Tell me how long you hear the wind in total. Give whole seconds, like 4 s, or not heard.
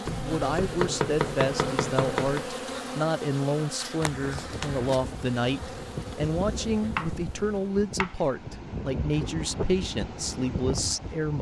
7 s.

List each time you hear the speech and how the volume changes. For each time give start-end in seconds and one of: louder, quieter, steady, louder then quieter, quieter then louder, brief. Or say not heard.
0.0-11.3 steady.